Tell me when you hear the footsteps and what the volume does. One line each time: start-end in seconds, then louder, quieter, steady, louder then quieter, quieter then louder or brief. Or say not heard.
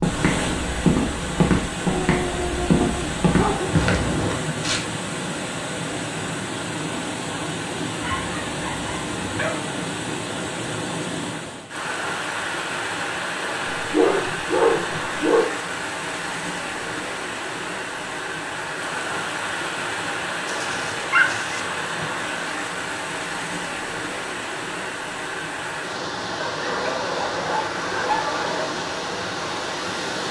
0.0-4.8 steady.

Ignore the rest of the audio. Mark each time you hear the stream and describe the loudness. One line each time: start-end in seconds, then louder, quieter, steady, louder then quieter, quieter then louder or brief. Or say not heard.
0.0-30.2 steady.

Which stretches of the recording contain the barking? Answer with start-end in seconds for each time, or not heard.
1.9-3.7, 8.0-9.7, 13.8-15.4, 20.4-21.6, 26.4-28.7.